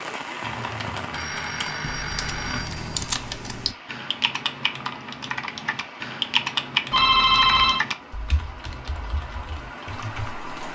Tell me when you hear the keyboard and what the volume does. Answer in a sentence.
You can hear the keyboard from 0.2 to 10.4 s, getting louder then quieter.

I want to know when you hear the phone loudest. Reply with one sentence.
The volume of the phone peaks at 7 seconds.